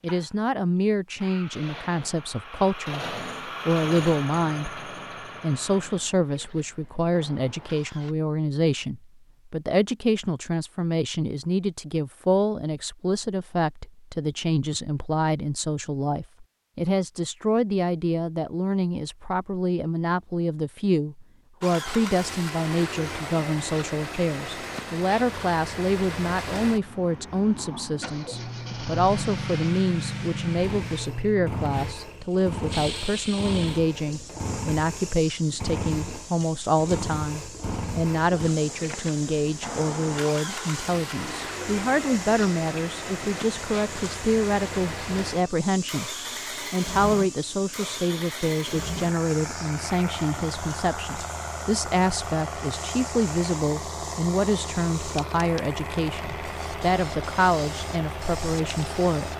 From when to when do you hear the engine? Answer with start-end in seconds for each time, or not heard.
0.0-8.2, 21.6-59.3.